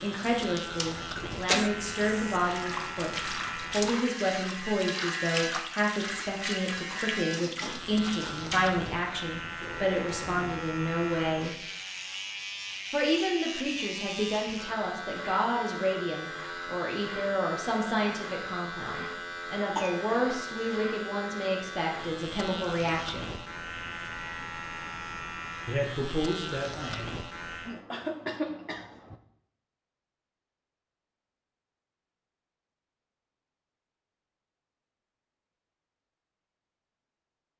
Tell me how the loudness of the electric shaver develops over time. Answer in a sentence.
The loudness of the electric shaver stays about the same.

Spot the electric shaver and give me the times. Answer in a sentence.
You can hear the electric shaver from 0.0 to 27.8 s.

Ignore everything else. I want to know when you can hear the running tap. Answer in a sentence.
You can hear the running tap from 0.0 to 8.8 s.